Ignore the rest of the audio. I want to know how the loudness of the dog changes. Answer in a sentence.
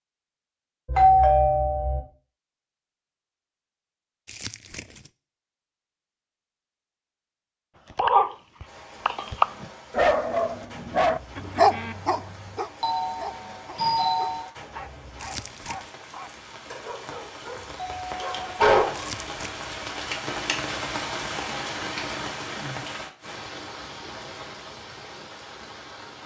The loudness of the dog goes down.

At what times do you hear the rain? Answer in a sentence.
The rain can be heard from 8.7 to 26.2 s.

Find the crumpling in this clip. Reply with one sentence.
You can hear the crumpling from 4.2 to 5.1 s, from 15.2 to 15.9 s and from 18.9 to 19.8 s.